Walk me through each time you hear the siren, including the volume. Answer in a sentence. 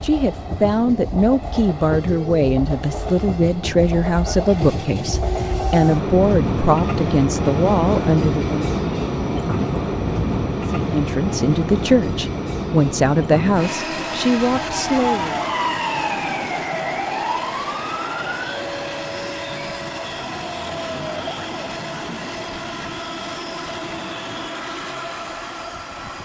The siren can be heard from 14.6 to 21.5 s, getting quieter.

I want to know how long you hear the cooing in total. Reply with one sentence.
The cooing can't be heard in this clip.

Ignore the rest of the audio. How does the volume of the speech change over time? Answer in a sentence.
The volume of the speech stays about the same.